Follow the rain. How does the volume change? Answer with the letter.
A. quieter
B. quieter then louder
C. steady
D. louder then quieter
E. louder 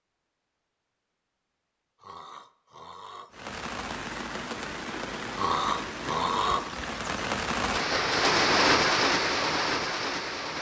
E.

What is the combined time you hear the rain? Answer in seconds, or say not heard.
7 s.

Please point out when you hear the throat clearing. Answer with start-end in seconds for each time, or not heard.
2.0-3.3, 5.3-6.7.